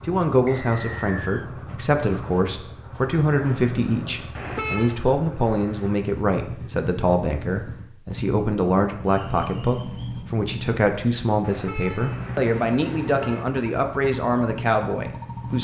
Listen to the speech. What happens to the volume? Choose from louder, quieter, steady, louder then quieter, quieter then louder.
steady.